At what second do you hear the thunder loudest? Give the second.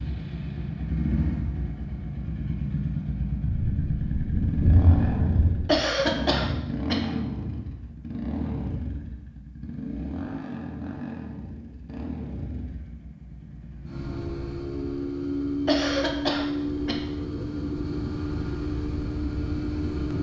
5 s.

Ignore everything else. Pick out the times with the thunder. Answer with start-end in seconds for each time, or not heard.
3.5-5.7.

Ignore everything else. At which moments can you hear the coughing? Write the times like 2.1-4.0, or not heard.
5.7-7.0, 15.7-17.0.